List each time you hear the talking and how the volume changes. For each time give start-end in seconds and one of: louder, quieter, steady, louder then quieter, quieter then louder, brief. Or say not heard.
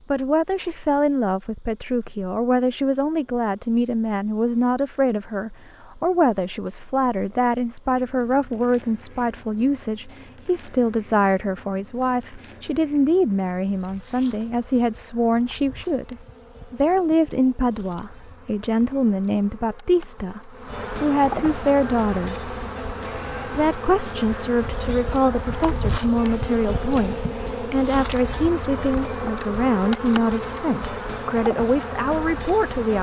0.1-22.4 steady
23.4-32.9 steady.